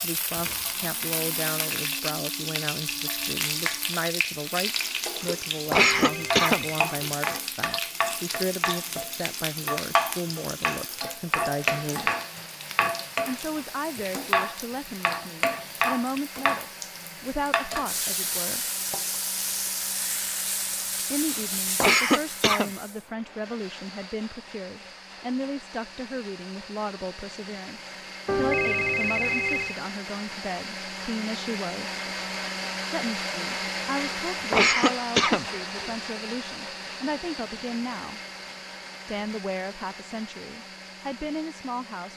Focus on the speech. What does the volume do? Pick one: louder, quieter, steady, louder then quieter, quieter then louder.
steady.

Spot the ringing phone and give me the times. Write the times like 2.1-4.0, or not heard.
5.8-6.8, 28.2-29.8.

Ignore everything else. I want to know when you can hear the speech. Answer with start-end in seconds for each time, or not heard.
0.0-12.1, 13.2-18.6, 21.1-32.0, 32.9-38.2, 39.0-42.1.